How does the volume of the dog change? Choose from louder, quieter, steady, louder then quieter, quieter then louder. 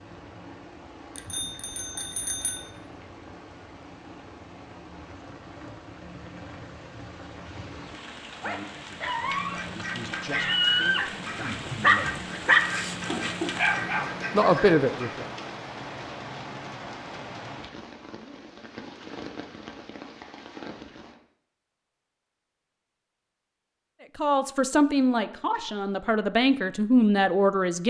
louder then quieter.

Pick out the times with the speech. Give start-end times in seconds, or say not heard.
8.7-12.2, 14.3-15.2, 24.1-27.8.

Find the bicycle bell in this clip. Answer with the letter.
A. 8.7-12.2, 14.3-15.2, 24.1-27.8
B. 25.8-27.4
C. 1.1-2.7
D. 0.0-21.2
C.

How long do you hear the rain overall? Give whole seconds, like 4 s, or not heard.
21 s.